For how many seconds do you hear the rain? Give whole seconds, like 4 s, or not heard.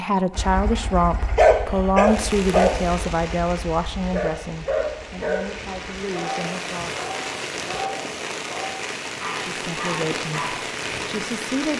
10 s.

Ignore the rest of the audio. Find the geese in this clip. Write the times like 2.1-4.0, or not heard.
not heard.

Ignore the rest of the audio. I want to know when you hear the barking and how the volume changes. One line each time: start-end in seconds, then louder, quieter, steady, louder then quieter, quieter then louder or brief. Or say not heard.
0.3-10.7 quieter.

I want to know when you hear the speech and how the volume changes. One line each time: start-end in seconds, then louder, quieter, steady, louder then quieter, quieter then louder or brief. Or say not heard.
0.0-7.1 quieter
9.4-11.7 brief.